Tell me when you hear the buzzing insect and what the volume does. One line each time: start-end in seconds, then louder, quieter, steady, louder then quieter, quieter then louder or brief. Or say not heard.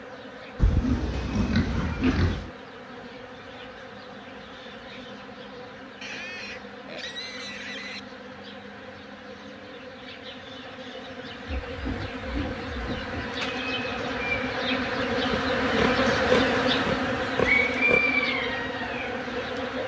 0.0-19.8 louder.